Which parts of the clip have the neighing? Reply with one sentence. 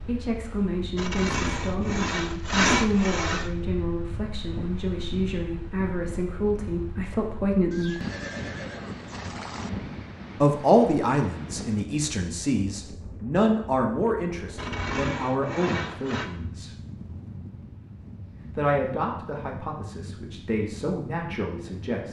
The neighing can be heard from 7.7 to 9.7 s.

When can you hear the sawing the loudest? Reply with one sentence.
The volume of the sawing peaks at 3 seconds.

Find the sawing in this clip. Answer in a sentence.
You can hear the sawing from 0.9 to 3.5 s and from 14.6 to 16.3 s.